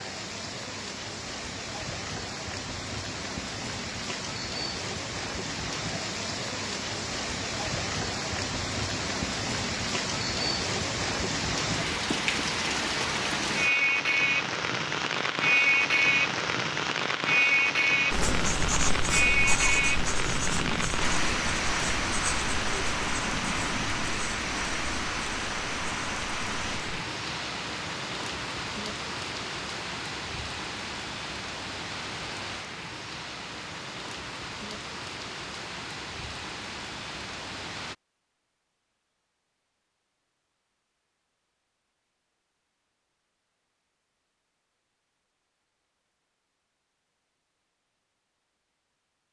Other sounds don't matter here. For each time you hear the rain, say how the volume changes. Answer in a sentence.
The rain can be heard from 0.0 to 38.0 s, getting louder then quieter.